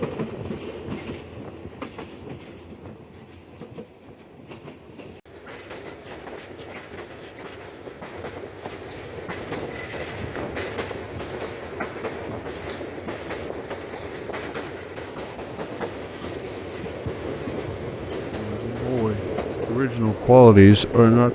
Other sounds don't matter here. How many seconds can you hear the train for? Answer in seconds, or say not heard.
21 s.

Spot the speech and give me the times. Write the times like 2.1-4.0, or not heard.
18.2-21.3.